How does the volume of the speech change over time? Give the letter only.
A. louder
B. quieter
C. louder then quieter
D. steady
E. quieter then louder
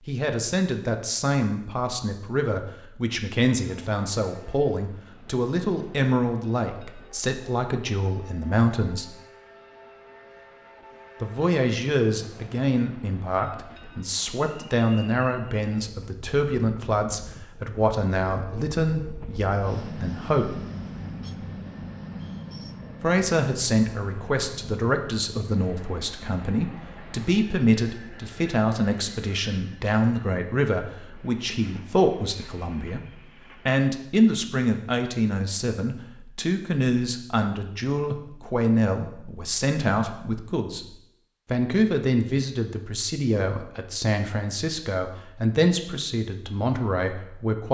D.